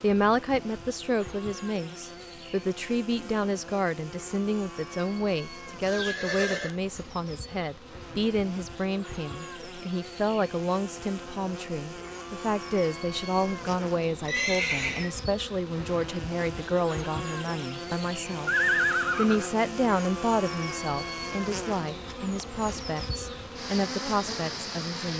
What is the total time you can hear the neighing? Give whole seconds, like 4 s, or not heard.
3 s.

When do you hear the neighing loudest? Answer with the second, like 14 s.
19 s.